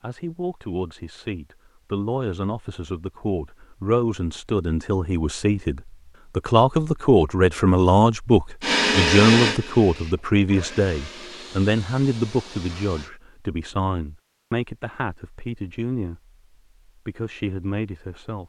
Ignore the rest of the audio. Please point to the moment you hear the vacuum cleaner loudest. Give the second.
9 s.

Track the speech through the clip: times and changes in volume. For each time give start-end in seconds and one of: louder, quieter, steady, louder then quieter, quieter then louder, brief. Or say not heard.
0.0-18.4 louder then quieter.